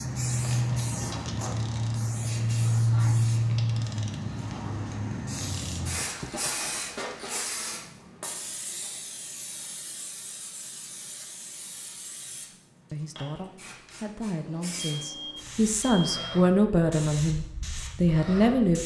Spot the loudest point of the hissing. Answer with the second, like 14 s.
3 s.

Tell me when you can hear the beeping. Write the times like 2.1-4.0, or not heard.
14.8-16.4.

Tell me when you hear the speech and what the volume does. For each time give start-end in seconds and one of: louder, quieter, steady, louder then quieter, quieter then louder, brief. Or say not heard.
12.9-18.8 louder.